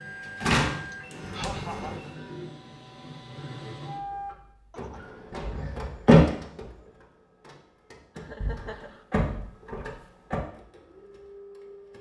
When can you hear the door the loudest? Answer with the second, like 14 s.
6 s.